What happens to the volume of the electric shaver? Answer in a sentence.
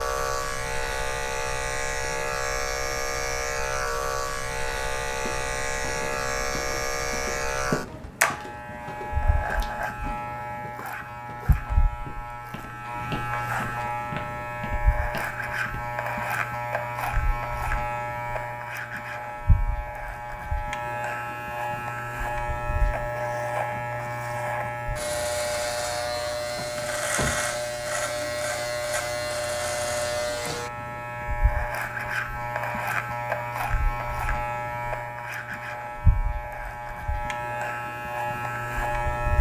The loudness of the electric shaver stays about the same.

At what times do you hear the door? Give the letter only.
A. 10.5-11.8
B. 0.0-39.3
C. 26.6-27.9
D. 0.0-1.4
C.